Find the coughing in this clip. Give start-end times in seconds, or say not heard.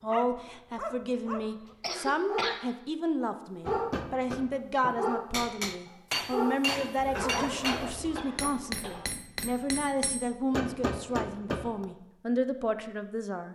1.8-2.6, 7.0-9.0.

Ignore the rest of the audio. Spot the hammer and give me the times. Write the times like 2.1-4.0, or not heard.
3.6-11.8.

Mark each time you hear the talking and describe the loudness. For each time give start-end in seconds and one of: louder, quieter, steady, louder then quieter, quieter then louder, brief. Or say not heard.
0.0-13.5 steady.